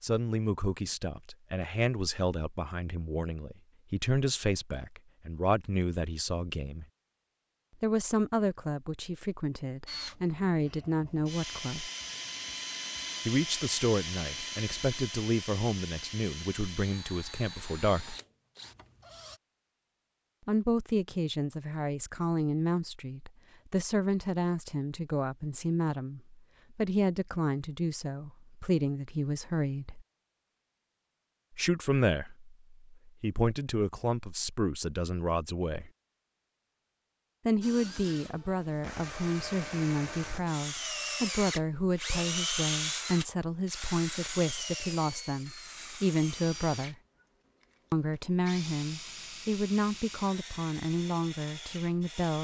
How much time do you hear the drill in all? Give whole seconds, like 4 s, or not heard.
24 s.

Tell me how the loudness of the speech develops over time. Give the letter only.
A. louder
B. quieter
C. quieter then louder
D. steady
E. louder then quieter
D.